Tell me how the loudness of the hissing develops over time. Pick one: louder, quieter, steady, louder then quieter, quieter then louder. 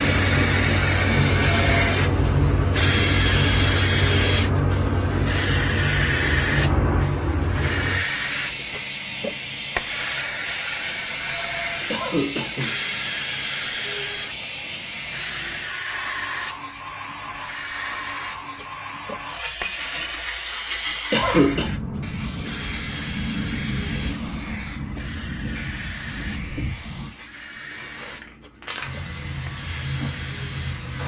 quieter.